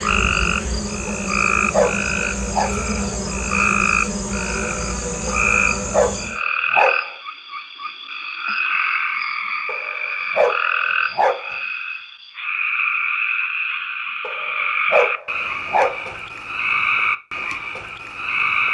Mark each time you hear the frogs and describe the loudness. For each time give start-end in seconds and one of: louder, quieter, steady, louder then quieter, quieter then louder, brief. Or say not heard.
0.0-18.6 steady.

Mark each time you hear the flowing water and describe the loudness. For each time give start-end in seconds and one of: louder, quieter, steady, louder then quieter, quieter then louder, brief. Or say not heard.
not heard.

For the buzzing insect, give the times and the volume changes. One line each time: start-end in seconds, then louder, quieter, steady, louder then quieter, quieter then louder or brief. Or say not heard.
0.0-6.4 steady.